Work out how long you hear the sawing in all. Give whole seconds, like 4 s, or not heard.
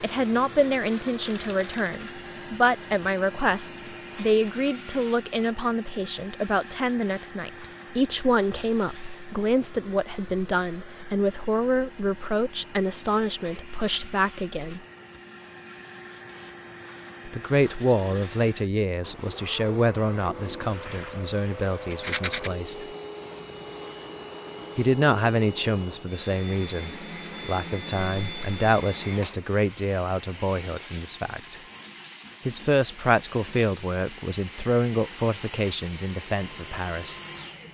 not heard.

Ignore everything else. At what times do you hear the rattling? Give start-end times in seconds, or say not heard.
0.6-2.1, 21.9-22.5, 27.9-28.7.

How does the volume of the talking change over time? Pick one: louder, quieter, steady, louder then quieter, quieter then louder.
steady.